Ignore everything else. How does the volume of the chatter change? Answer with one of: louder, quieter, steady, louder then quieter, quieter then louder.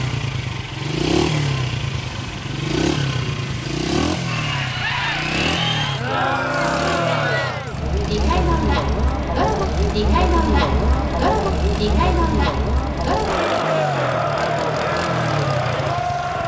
steady.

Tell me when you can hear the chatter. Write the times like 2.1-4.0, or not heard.
4.2-16.4.